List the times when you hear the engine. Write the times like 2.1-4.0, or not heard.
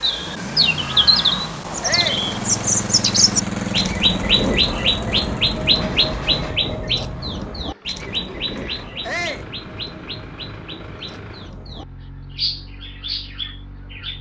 0.0-14.1.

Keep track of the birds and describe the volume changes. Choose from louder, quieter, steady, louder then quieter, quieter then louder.
quieter.